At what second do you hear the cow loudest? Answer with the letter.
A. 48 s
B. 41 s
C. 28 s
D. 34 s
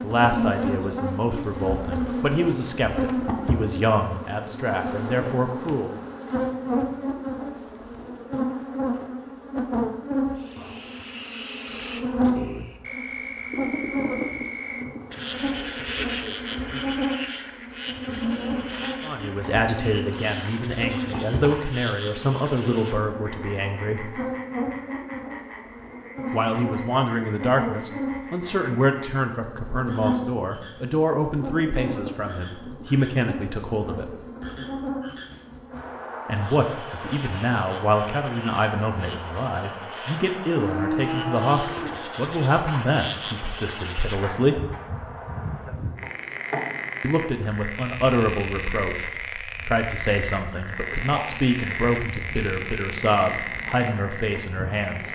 B.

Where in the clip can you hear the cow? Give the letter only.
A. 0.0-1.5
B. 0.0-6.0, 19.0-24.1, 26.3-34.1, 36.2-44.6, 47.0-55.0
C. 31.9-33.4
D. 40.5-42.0
D.